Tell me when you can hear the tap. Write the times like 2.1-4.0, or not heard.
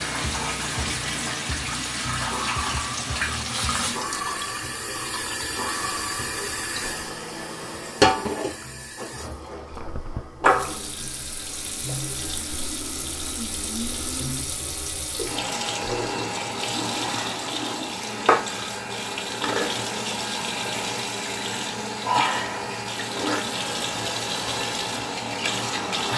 0.0-26.1.